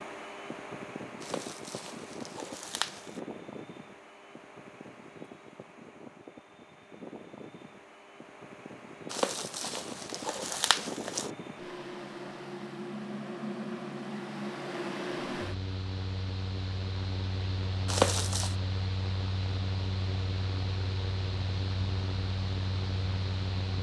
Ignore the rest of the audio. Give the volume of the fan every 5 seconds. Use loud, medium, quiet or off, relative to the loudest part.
medium, medium, loud, loud, loud.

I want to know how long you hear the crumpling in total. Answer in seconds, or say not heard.
5 s.